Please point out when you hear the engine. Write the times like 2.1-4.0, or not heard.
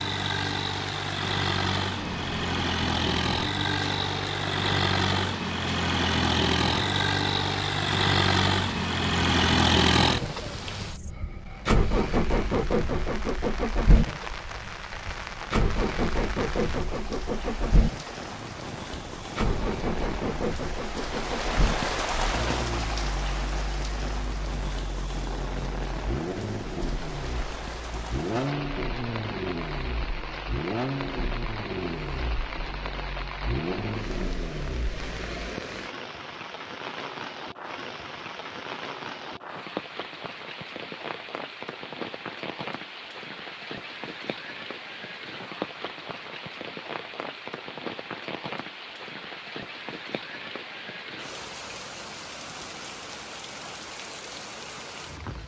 0.0-35.5.